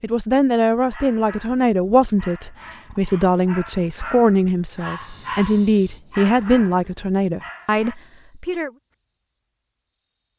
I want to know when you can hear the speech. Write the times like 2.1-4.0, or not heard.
0.0-8.7.